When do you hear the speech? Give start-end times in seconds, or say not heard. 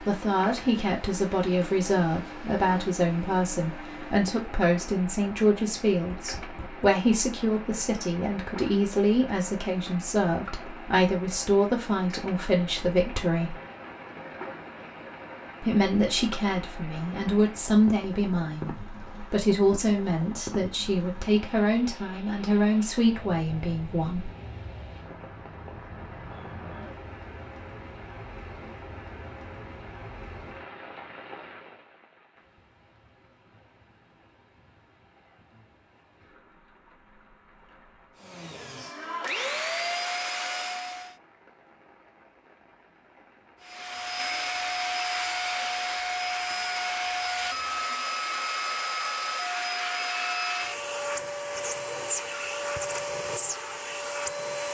0.1-13.6, 15.6-24.3.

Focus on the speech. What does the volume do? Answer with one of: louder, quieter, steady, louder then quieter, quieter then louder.
steady.